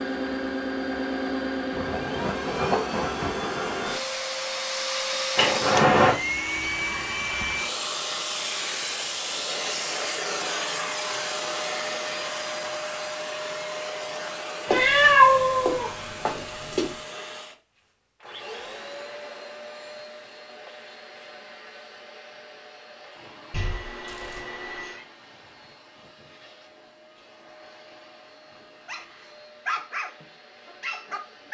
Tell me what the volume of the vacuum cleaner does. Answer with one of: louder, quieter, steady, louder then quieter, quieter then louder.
quieter.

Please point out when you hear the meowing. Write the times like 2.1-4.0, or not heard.
5.3-6.2, 14.7-16.9, 23.5-25.1.